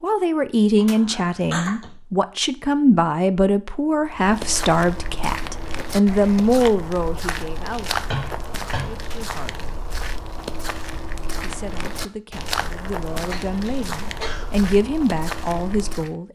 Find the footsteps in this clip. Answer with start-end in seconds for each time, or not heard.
4.0-16.1.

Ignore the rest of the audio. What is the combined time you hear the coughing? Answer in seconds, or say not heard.
3 s.